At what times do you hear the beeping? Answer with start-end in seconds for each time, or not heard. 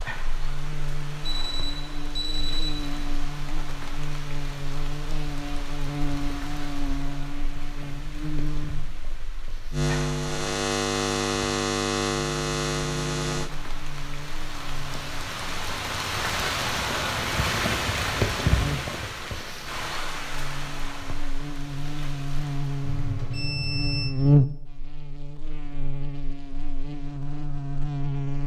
1.3-3.1, 22.9-24.1.